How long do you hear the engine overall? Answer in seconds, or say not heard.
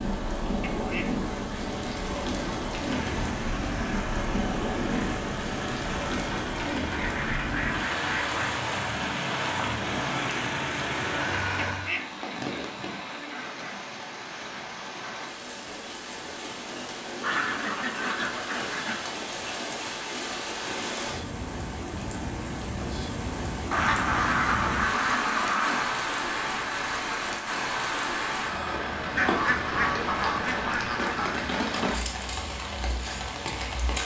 9 s.